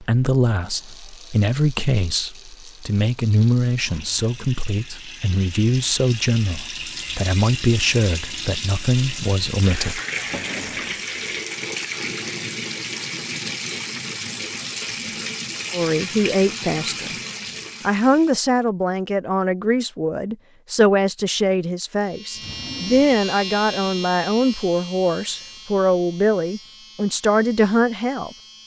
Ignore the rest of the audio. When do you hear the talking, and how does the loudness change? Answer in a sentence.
You can hear the talking from 0.0 to 10.0 s, at a steady volume; briefly from 15.7 to 17.1 s; and from 17.9 to 28.3 s, at a steady volume.